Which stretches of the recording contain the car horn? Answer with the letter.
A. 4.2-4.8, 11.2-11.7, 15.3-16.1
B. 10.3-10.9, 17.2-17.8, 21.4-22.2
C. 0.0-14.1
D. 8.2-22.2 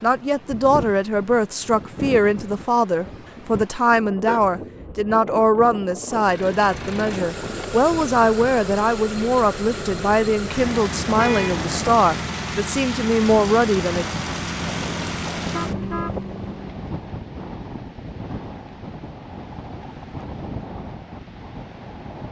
A.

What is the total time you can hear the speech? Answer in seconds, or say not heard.
14 s.